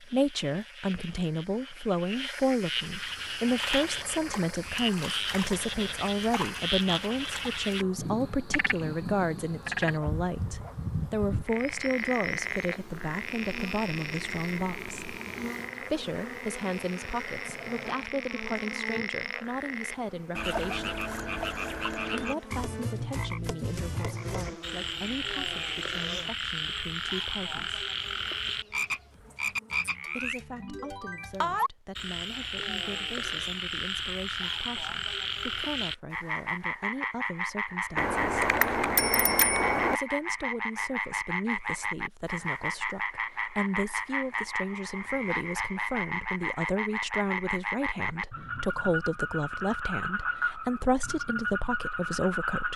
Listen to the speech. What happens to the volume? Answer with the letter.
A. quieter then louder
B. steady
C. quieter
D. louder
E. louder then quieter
A.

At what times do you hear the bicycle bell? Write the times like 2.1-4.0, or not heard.
38.0-40.0.